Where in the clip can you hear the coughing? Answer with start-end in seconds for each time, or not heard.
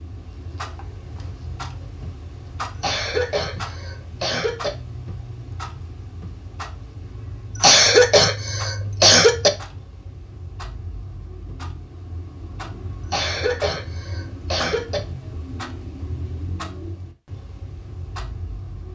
2.8-4.7, 7.5-9.5, 13.1-15.0.